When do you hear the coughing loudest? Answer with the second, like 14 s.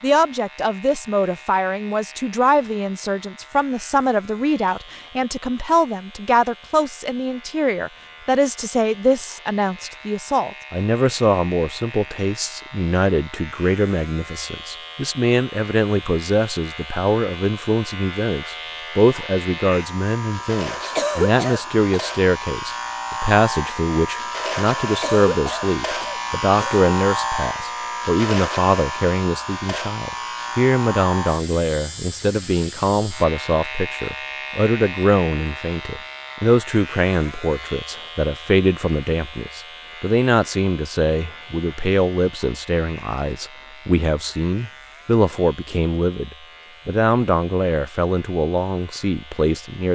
21 s.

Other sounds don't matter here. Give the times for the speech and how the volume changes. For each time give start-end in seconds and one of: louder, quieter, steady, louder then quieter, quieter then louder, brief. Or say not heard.
0.0-49.8 steady.